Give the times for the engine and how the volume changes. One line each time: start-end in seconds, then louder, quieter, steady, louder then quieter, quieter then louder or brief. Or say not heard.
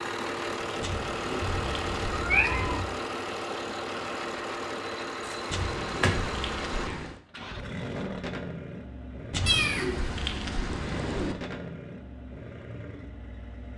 0.0-13.7 quieter.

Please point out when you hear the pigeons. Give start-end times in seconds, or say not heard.
0.8-2.9, 5.5-7.2, 9.3-11.3.